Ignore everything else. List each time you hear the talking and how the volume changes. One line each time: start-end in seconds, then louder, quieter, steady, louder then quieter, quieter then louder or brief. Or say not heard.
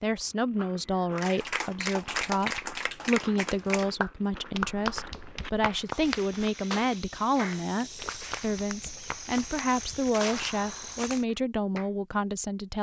0.0-12.7 steady.